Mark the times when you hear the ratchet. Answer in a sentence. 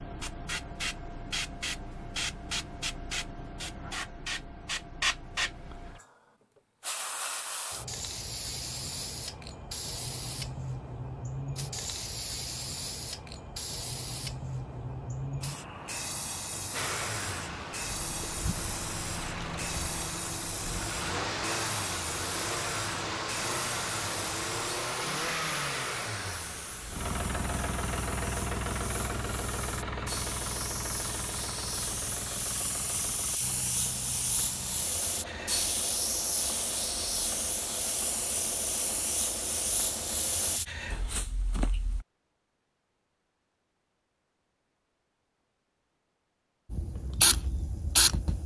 The ratchet can't be heard in this clip.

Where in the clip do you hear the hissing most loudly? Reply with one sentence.
The loudest moment of the hissing is at 48 seconds.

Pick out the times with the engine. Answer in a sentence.
The engine can be heard from 16.7 to 40.6 s.